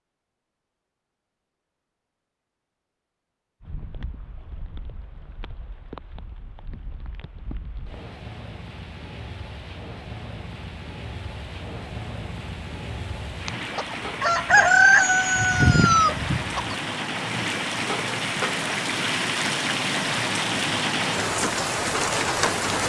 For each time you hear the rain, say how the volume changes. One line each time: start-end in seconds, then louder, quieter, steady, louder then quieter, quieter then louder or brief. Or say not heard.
3.6-22.8 louder.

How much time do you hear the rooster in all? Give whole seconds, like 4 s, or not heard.
3 s.